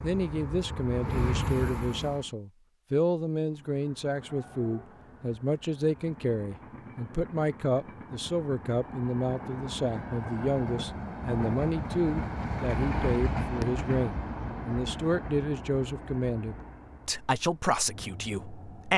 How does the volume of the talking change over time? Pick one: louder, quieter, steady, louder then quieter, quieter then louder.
steady.